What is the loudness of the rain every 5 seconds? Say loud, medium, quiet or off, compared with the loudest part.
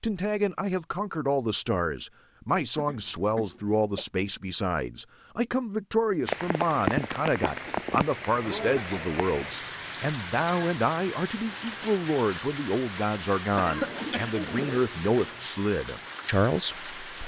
off, loud, medium, medium.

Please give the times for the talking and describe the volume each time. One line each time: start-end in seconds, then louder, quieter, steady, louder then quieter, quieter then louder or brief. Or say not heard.
0.0-17.2 steady.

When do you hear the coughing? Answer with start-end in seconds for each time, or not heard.
2.8-4.0, 7.5-9.2, 13.5-14.9.